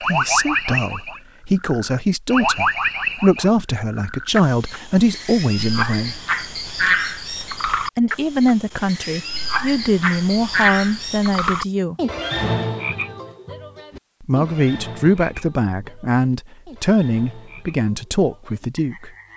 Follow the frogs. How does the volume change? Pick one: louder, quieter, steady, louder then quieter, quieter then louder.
quieter.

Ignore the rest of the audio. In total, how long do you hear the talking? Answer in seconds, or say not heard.
15 s.